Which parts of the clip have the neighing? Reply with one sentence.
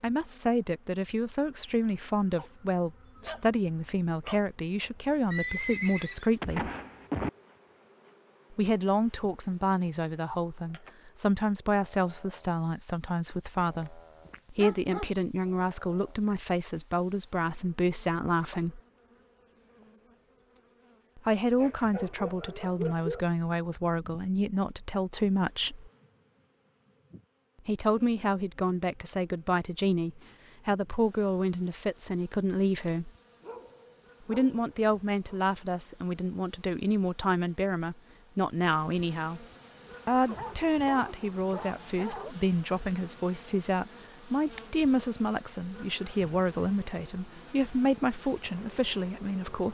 The neighing can be heard from 5.3 to 7.3 s.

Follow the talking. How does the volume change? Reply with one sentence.
The volume of the talking stays about the same.